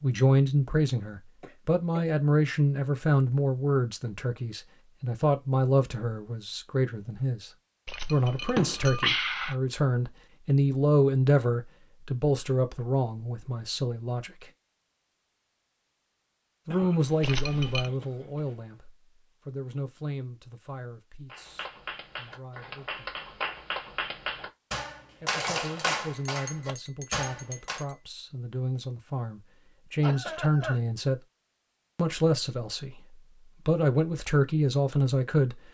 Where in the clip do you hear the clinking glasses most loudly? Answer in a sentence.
The loudest moment of the clinking glasses is at 9 seconds.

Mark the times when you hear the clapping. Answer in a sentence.
You can hear the clapping from 21.2 to 27.9 s.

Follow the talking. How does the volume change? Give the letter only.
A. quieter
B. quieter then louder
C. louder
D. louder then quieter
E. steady
B.